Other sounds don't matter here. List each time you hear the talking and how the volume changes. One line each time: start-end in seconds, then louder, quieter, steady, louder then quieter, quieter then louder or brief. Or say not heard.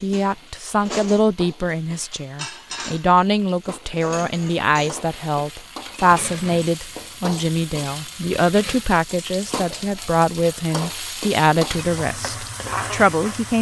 0.0-13.5 steady.